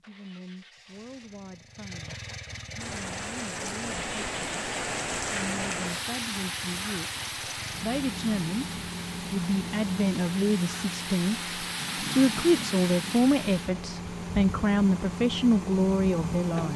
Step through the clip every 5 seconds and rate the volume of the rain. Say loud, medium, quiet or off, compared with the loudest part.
loud, loud, loud, off.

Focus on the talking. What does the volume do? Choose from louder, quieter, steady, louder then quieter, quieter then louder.
louder.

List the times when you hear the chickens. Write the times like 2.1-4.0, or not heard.
not heard.